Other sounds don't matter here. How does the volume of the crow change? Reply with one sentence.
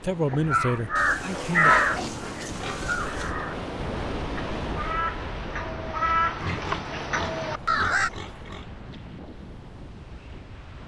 The loudness of the crow goes down, then up.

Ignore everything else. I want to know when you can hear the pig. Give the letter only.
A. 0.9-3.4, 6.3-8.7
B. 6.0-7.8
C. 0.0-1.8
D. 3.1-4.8
A.